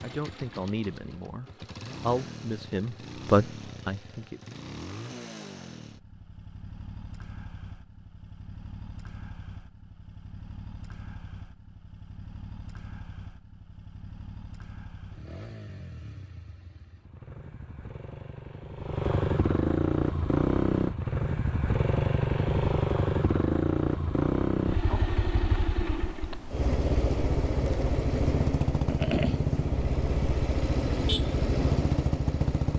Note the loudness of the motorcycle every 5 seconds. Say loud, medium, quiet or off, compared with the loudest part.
quiet, quiet, quiet, medium, loud, loud, loud.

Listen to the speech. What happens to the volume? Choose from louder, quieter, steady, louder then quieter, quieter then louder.
quieter then louder.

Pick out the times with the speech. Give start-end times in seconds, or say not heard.
0.0-4.5.